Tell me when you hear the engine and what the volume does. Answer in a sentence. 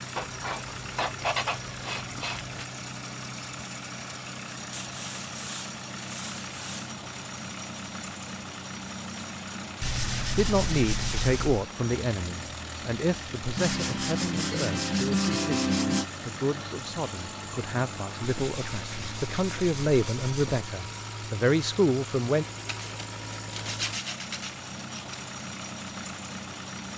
The engine can be heard from 0.0 to 26.9 s, at a steady volume.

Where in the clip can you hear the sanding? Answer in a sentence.
The sanding can be heard from 0.1 to 2.6 s, from 4.7 to 7.0 s, from 9.8 to 11.7 s, from 13.6 to 16.1 s, from 18.2 to 20.7 s and from 22.6 to 25.2 s.